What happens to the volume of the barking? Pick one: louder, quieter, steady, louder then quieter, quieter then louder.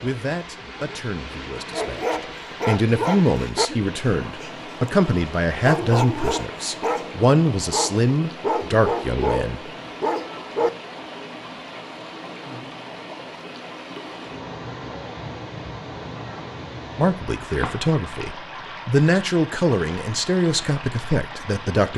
quieter then louder.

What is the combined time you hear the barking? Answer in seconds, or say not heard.
9 s.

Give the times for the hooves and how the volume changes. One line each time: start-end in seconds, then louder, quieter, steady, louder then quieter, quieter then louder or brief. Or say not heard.
not heard.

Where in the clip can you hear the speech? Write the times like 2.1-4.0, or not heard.
0.0-9.6, 16.9-21.9.